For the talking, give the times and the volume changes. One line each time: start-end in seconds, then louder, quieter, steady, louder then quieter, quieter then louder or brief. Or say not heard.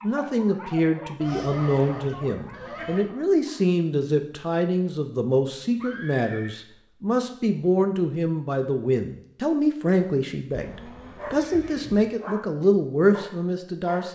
0.0-14.0 steady.